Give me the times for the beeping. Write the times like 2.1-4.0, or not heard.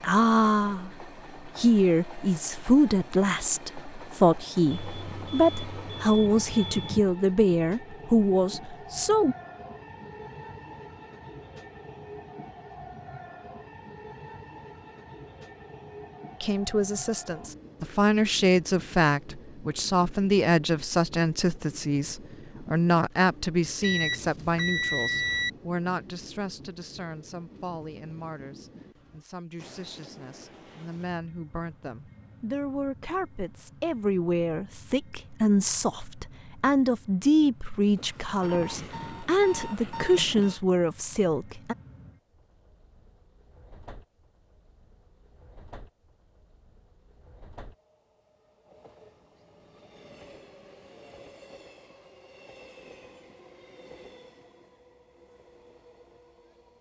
4.7-7.0, 23.8-25.5, 38.0-40.6.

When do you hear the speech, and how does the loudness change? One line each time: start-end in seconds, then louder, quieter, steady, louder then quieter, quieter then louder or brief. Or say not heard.
0.0-9.3 steady
16.4-41.8 quieter then louder.